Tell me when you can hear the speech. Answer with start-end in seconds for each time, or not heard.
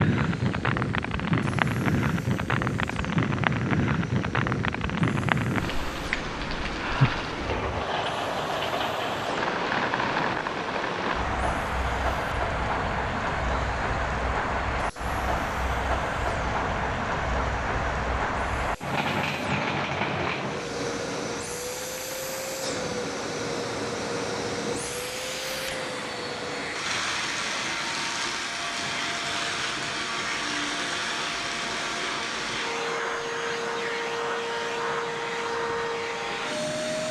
not heard.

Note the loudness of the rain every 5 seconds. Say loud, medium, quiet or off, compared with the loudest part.
loud, loud, loud, loud, medium, quiet, quiet, quiet.